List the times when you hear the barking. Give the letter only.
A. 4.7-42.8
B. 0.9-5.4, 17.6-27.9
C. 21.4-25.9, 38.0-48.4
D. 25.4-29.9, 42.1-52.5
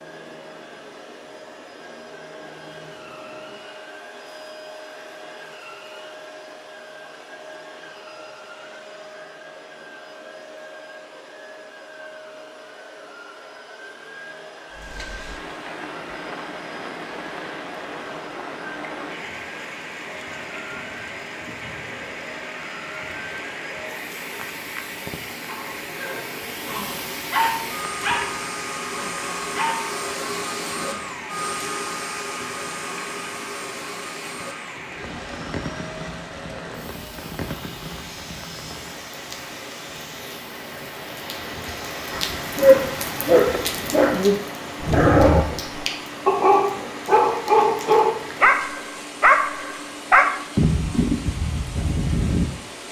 D.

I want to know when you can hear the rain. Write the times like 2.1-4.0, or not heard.
14.7-52.8.